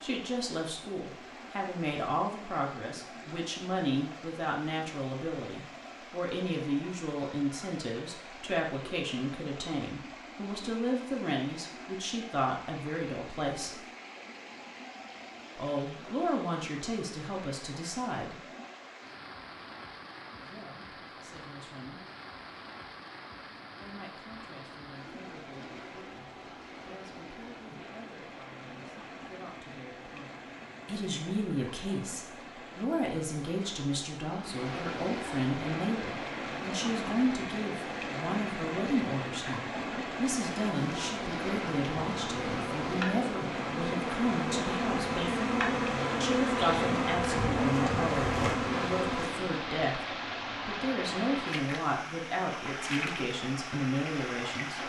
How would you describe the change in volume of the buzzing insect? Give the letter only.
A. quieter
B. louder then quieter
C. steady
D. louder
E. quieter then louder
D.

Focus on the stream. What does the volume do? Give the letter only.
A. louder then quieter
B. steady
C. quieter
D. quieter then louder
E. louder
E.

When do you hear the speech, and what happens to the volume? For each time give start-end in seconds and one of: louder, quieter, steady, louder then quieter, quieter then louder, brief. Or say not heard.
0.0-13.8 steady
15.6-18.4 brief
20.3-22.0 brief
23.8-54.8 louder.